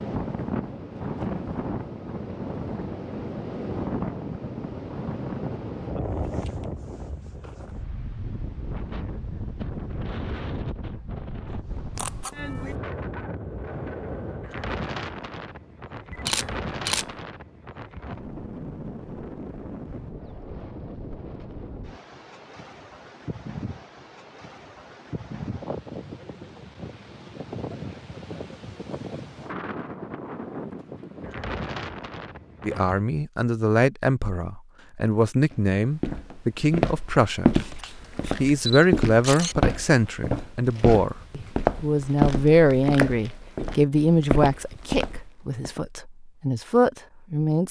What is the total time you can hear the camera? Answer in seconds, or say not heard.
4 s.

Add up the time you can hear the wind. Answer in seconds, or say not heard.
33 s.